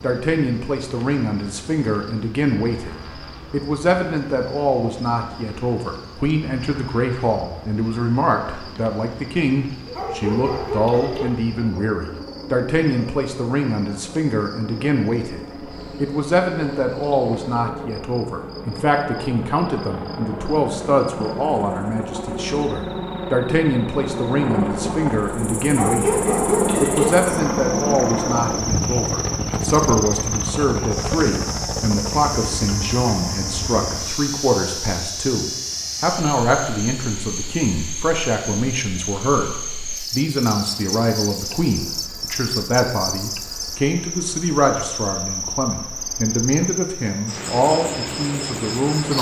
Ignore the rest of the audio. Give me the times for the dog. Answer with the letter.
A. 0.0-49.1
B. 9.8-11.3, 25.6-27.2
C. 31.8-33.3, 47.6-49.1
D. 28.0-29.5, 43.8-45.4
B.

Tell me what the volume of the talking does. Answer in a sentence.
The loudness of the talking stays about the same.